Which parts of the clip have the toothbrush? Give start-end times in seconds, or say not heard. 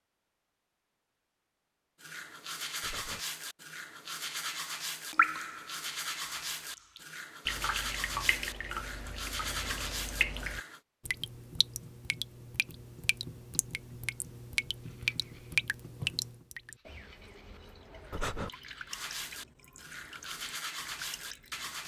2.0-10.8, 14.8-21.8.